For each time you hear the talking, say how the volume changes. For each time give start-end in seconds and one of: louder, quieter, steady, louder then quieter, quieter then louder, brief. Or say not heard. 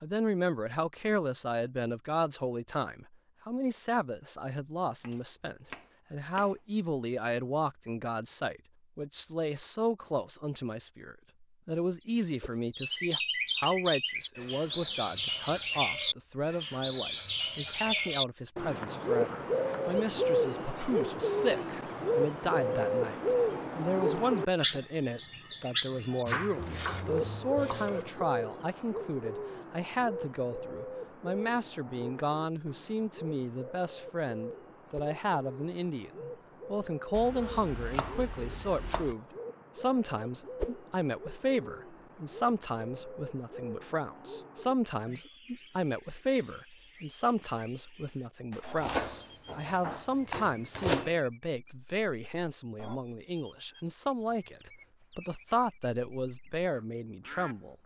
0.0-57.8 steady.